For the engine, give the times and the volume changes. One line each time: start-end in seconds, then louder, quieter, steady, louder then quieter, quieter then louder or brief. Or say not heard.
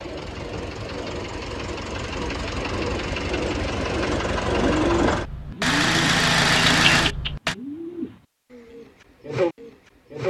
0.0-7.5 louder.